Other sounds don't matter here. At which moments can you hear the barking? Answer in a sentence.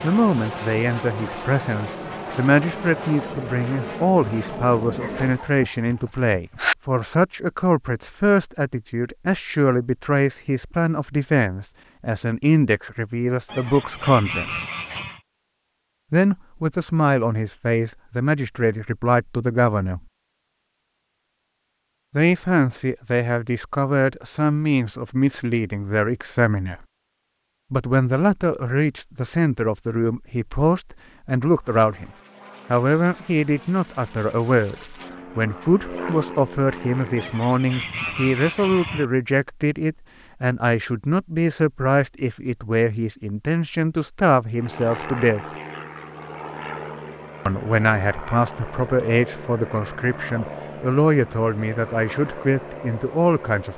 The barking can be heard from 4.8 to 6.8 s.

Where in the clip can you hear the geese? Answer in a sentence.
The geese can be heard from 13.4 to 15.2 s and from 37.1 to 39.0 s.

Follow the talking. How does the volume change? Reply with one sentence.
The loudness of the talking stays about the same.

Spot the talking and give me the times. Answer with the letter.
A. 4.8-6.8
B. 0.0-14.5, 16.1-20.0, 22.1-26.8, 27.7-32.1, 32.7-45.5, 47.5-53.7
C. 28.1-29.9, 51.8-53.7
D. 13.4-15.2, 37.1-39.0
B.